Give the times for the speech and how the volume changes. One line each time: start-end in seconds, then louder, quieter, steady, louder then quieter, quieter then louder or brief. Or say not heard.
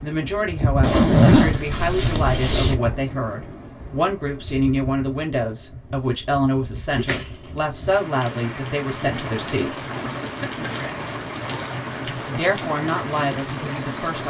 0.0-9.8 steady
12.2-14.2 brief.